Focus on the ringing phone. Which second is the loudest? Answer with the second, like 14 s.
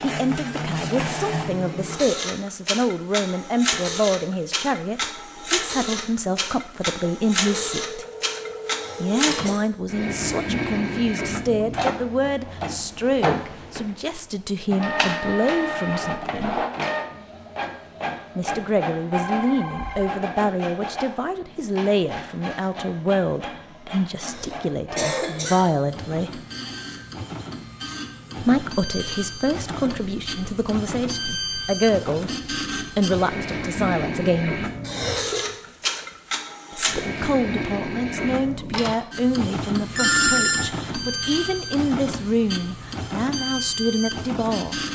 40 s.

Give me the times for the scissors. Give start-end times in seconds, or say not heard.
not heard.